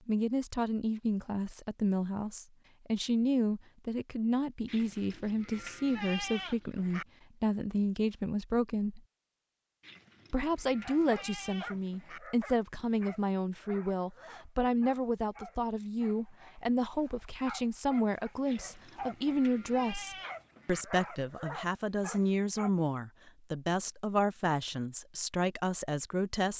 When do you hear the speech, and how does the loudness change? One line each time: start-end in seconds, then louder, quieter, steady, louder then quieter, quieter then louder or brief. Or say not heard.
0.1-9.0 steady
10.3-26.5 steady.